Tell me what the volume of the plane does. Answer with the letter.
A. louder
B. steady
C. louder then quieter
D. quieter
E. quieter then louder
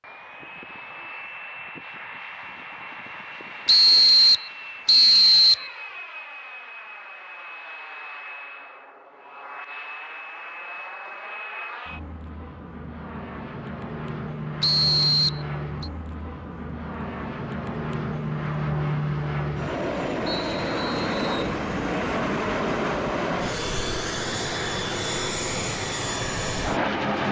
A.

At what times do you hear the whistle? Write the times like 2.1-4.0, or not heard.
3.6-5.7, 14.6-15.9, 20.2-21.5.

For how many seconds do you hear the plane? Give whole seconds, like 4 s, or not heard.
27 s.